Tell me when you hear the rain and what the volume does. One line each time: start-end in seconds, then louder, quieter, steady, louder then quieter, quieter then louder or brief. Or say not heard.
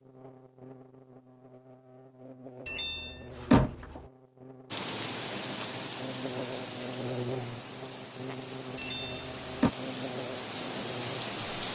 4.7-11.6 quieter then louder.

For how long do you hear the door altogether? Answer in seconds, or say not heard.
2 s.